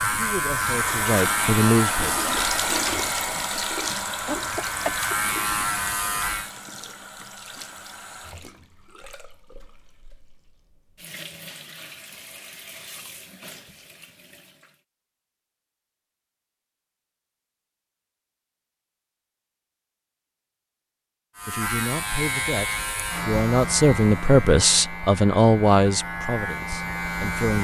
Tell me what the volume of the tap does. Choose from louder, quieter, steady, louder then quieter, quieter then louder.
quieter.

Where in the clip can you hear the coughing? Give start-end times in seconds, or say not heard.
4.2-5.2.